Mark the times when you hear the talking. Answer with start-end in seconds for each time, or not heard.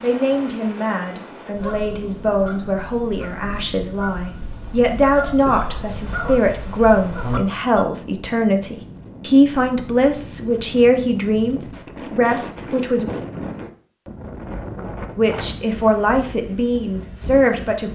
0.0-13.1, 15.2-17.8.